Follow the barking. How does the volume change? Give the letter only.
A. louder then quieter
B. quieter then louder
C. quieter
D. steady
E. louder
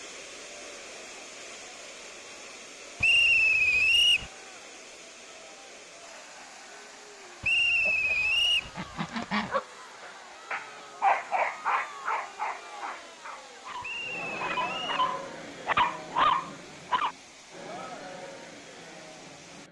B.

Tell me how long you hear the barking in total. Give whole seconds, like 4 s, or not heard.
8 s.